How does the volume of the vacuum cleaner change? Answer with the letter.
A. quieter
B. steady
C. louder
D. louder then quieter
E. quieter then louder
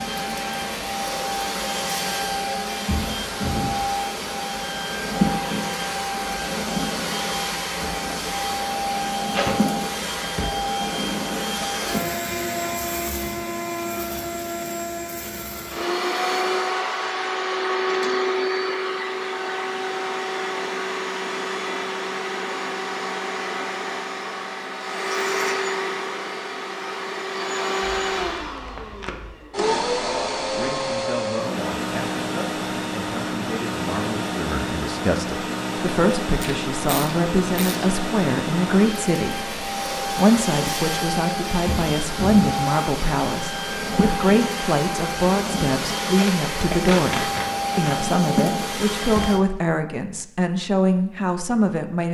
B.